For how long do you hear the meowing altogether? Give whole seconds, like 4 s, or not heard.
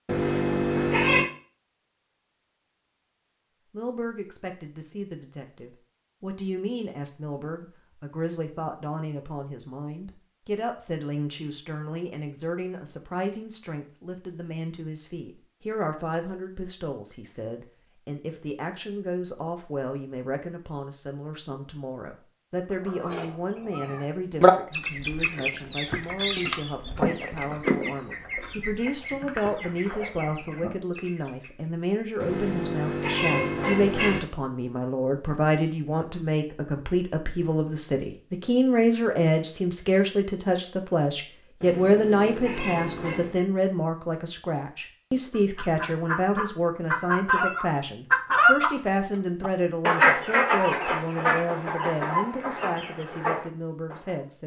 5 s.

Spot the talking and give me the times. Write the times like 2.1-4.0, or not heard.
3.7-54.4.